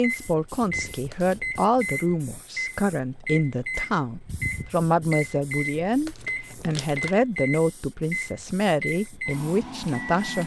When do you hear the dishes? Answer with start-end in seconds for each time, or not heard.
not heard.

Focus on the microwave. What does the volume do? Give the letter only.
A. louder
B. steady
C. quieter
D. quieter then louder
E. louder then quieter
B.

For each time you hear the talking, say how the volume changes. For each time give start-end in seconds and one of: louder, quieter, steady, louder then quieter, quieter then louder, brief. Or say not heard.
0.0-10.4 steady.